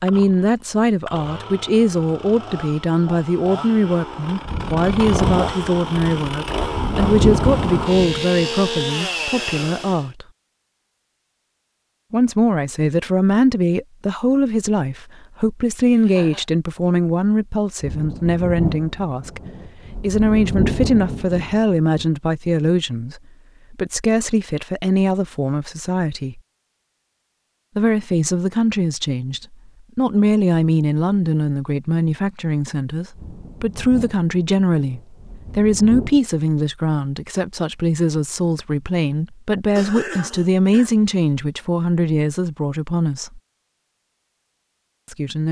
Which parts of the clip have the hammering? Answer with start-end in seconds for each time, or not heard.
not heard.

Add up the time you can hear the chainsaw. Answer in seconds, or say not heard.
10 s.